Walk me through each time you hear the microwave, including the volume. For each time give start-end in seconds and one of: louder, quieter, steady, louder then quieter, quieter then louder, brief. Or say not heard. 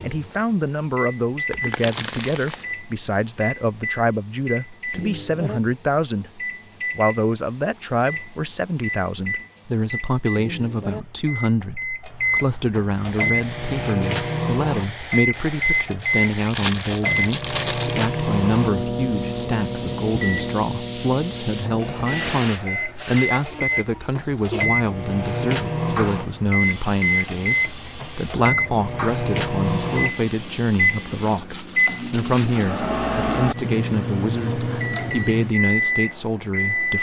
0.0-36.9 louder.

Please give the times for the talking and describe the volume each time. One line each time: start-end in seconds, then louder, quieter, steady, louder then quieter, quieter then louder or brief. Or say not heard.
0.0-36.9 steady.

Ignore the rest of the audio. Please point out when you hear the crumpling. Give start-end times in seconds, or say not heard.
1.5-2.6, 16.4-18.1, 31.5-33.0.